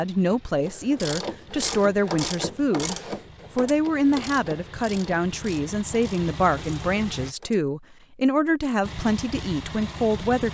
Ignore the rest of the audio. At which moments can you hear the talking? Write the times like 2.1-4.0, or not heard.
0.0-3.0, 3.5-10.4.